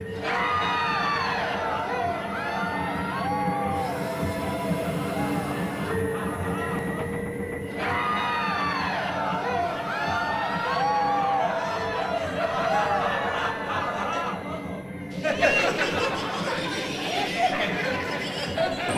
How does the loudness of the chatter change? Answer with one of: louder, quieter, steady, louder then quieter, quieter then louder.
quieter then louder.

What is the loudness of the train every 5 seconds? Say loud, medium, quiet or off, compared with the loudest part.
loud, loud, medium, medium.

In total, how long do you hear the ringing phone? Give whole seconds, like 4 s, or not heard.
3 s.